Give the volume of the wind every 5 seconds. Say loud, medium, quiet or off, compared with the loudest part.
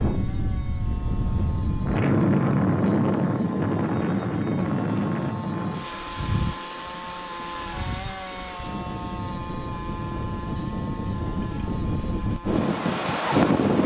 loud, medium, loud.